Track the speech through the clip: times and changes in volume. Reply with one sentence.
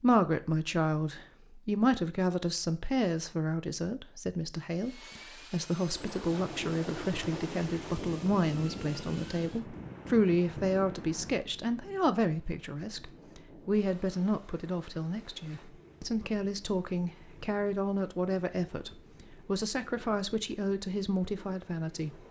You can hear the speech from 0.0 to 22.1 s, at a steady volume.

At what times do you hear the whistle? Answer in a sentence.
The whistle can't be heard in this clip.